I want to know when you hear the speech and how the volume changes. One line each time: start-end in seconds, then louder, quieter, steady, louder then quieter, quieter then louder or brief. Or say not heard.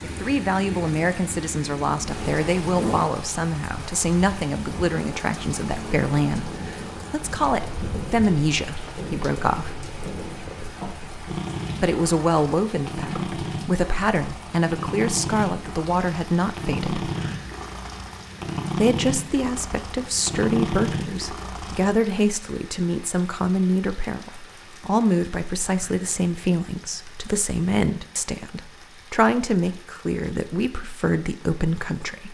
0.0-9.8 steady
11.8-17.1 steady
18.8-32.2 steady.